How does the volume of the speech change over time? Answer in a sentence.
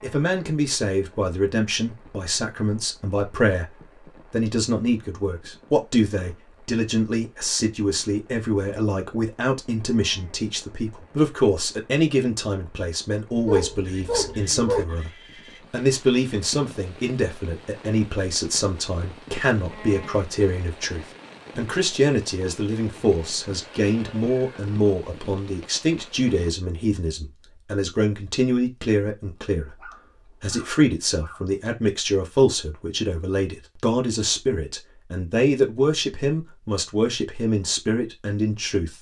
The volume of the speech stays about the same.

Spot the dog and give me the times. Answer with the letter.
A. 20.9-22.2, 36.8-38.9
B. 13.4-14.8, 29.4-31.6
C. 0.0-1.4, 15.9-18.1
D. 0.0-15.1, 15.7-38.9
B.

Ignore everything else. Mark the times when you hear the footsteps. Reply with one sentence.
The footsteps can't be heard in this clip.